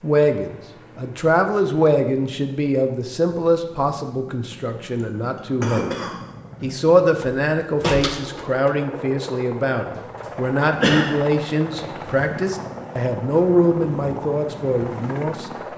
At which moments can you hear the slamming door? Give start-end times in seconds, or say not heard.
7.2-8.8.